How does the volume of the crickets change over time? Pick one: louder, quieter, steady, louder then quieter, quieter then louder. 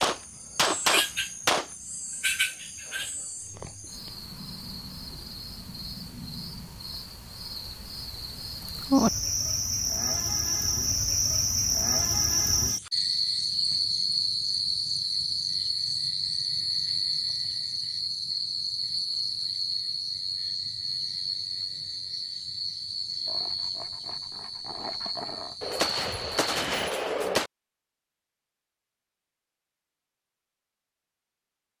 louder then quieter.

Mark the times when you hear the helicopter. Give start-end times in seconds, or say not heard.
not heard.